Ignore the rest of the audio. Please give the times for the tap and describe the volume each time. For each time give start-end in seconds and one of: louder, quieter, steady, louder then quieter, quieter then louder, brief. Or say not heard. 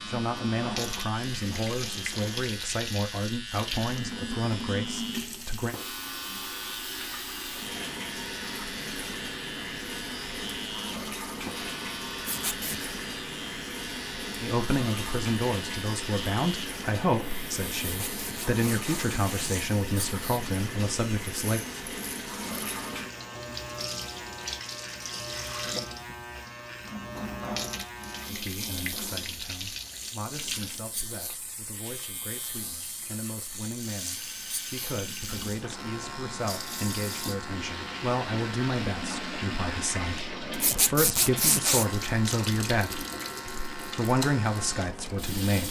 0.0-45.6 steady.